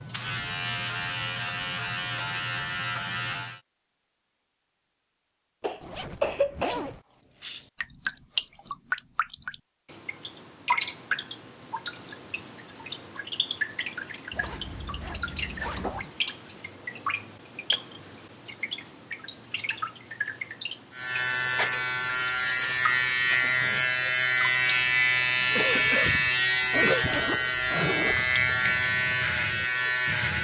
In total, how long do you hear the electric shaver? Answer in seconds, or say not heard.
13 s.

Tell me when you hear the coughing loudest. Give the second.
6 s.